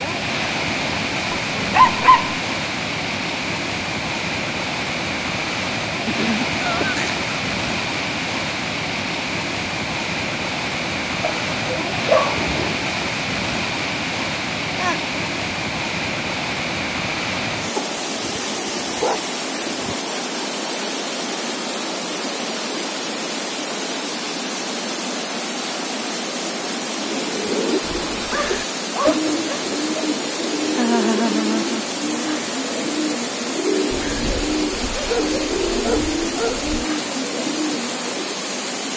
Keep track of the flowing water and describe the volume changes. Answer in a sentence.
The loudness of the flowing water stays about the same.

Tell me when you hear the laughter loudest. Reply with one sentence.
The volume of the laughter peaks at 31 seconds.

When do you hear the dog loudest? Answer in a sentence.
The volume of the dog peaks at 2 seconds.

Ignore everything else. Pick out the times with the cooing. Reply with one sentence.
You can hear the cooing from 26.9 to 38.4 s.